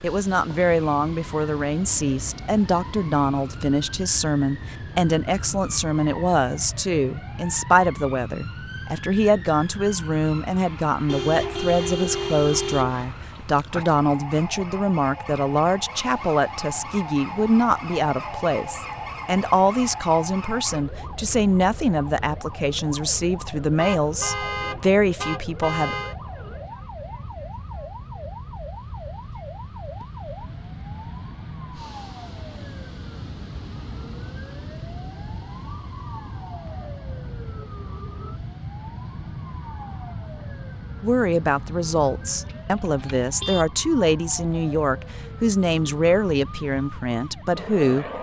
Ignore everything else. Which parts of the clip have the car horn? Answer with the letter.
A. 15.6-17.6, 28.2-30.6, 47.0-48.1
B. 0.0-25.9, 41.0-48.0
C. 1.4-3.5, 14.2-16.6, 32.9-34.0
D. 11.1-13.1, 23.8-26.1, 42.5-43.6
D.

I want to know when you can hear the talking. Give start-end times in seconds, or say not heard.
0.0-25.9, 41.0-48.0.